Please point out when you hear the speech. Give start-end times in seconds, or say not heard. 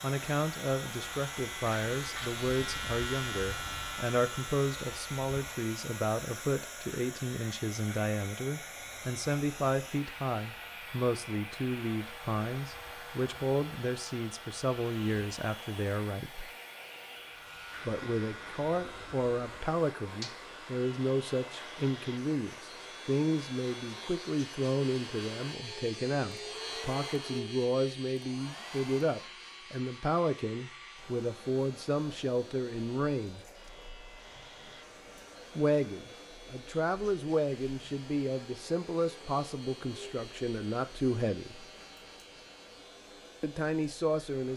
0.0-16.5, 17.9-33.5, 35.5-41.6, 43.4-44.5.